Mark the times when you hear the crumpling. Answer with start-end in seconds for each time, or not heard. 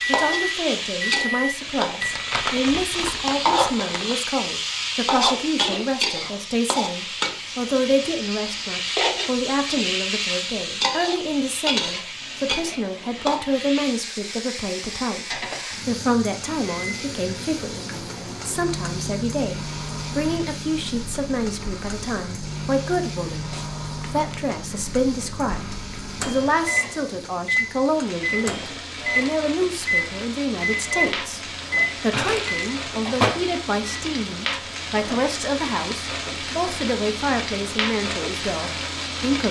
2.0-4.2, 23.5-24.4, 32.1-32.7.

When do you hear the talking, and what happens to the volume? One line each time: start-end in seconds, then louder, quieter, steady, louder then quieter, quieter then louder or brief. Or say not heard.
0.1-39.4 steady.